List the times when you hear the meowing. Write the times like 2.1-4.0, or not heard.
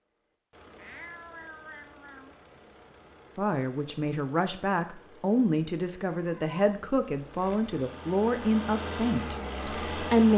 0.8-2.4, 6.2-6.6.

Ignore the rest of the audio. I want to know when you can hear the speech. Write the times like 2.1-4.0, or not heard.
3.4-10.3.